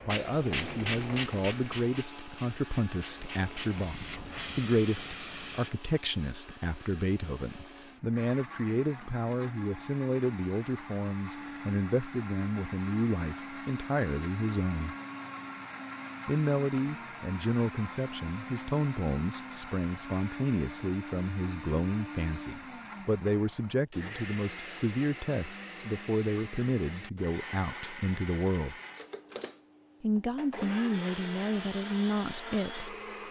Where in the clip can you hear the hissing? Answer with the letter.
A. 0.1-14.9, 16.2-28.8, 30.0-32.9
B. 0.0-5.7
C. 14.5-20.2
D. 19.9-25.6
B.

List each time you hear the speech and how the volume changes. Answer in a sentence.
You can hear the speech from 0.1 to 14.9 s, at a steady volume; from 16.2 to 28.8 s, at a steady volume; and briefly from 30.0 to 32.9 s.